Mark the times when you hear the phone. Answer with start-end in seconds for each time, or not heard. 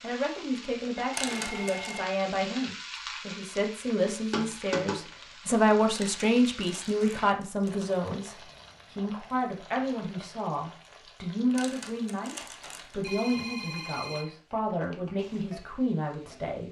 0.9-2.1, 13.0-14.3.